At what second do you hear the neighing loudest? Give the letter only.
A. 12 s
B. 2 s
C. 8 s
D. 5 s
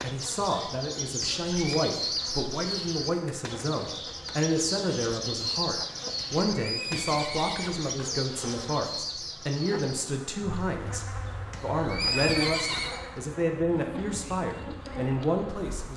A.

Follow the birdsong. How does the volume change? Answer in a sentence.
The loudness of the birdsong goes down.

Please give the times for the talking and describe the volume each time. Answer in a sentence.
You can hear the talking from 0.0 to 15.9 s, at a steady volume.